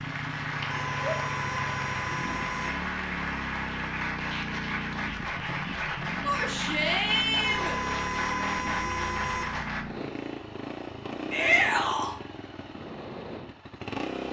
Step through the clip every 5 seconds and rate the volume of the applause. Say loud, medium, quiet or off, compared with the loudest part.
loud, loud, off.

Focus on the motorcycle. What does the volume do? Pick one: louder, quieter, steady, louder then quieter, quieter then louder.
steady.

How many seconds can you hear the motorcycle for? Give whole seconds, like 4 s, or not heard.
14 s.